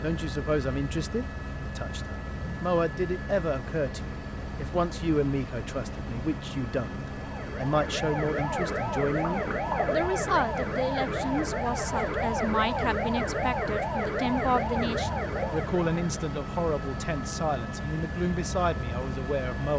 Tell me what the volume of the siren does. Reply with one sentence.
The loudness of the siren stays about the same.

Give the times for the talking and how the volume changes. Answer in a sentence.
You can hear the talking from 0.0 to 19.7 s, at a steady volume.